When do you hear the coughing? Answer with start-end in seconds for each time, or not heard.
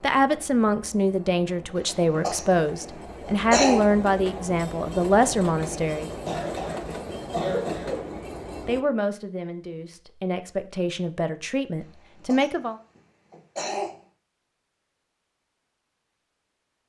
2.1-3.8, 6.0-8.1, 11.8-13.9.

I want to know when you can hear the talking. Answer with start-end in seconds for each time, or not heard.
0.0-6.1, 8.7-12.8.